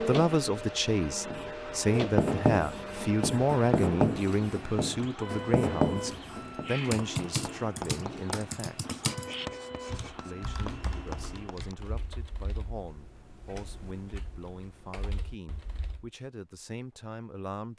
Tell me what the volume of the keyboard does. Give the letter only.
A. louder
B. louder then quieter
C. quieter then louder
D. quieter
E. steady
D.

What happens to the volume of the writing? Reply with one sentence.
The loudness of the writing goes down.